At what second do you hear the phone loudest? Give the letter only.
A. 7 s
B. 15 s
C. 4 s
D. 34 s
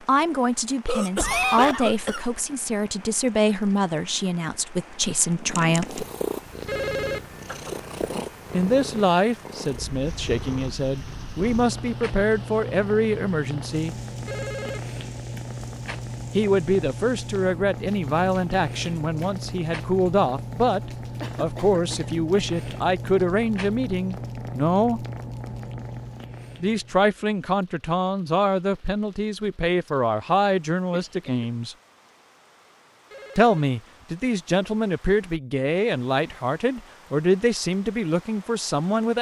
A.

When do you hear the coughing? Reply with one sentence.
The coughing can be heard from 0.8 to 2.3 s, from 21.2 to 22.1 s and from 30.9 to 31.4 s.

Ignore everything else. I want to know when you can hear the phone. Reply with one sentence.
The phone can be heard from 6.7 to 7.3 s, from 14.2 to 14.9 s and from 33.1 to 33.7 s.